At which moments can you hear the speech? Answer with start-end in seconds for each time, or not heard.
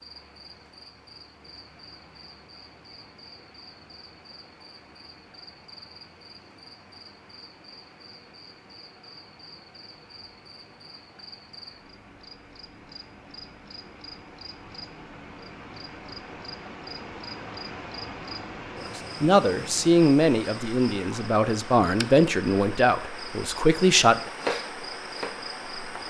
18.9-24.2.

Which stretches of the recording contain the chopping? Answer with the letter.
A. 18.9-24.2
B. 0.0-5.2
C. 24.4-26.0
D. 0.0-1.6
C.